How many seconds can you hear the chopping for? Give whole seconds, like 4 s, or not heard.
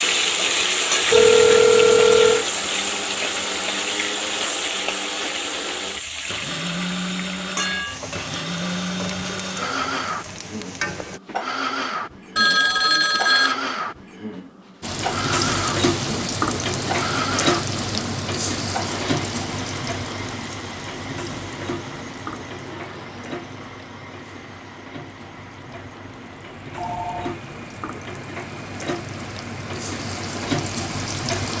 not heard.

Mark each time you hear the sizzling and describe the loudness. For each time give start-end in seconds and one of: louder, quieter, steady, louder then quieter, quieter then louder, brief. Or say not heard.
0.0-11.2 quieter
14.8-31.5 quieter then louder.